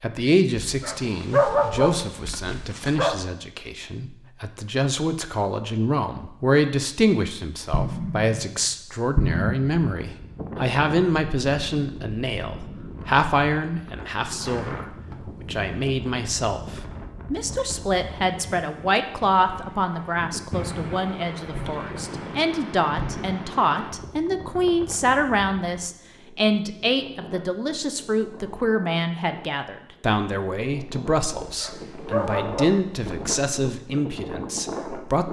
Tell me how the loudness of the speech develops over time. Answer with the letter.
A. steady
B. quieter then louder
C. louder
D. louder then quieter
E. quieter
A.